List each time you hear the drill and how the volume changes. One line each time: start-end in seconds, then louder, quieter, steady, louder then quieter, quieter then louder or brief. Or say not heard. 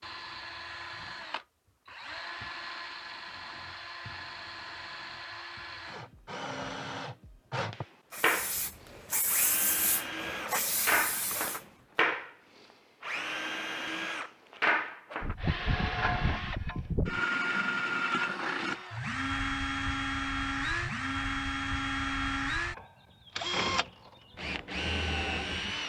0.0-25.8 louder.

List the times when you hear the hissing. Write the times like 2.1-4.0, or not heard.
8.1-11.7.